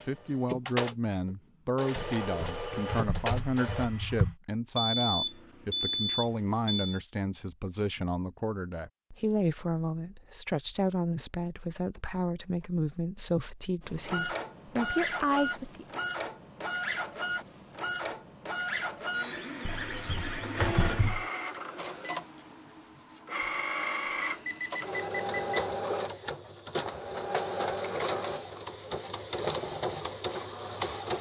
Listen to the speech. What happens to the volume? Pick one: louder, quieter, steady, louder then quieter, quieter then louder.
steady.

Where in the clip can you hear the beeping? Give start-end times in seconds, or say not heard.
4.8-7.0, 24.2-25.7.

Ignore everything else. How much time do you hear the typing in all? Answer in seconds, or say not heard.
4 s.